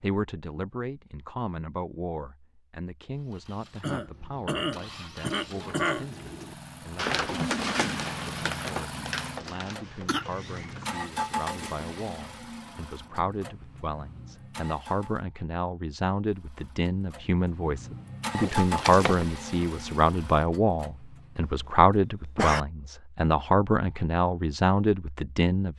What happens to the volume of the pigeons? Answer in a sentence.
The loudness of the pigeons goes up, then down.